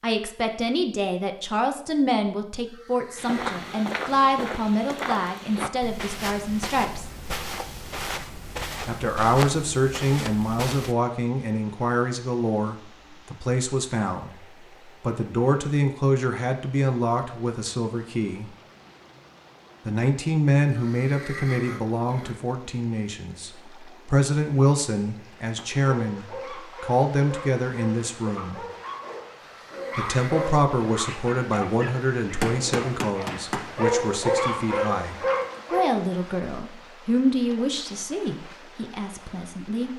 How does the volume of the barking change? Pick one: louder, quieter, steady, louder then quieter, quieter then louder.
louder.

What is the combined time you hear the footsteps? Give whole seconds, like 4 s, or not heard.
8 s.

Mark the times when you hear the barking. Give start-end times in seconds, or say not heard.
25.3-36.0.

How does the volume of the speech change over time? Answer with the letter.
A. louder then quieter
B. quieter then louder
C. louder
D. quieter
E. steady
E.